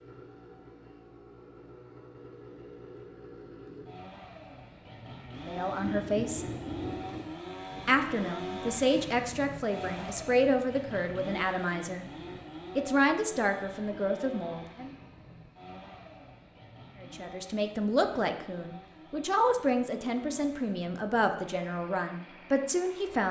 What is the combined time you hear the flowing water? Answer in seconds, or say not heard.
not heard.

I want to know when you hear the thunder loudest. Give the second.
7 s.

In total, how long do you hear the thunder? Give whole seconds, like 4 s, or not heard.
2 s.